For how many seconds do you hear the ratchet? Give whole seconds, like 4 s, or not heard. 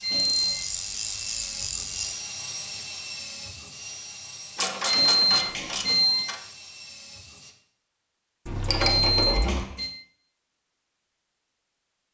5 s.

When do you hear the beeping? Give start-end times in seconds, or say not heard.
0.0-0.6, 4.8-6.2, 8.8-9.9.